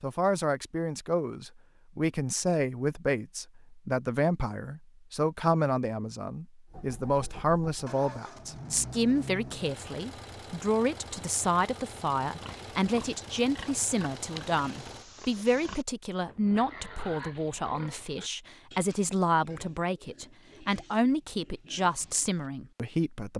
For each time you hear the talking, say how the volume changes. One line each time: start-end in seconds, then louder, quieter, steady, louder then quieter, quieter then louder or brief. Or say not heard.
0.0-23.3 steady.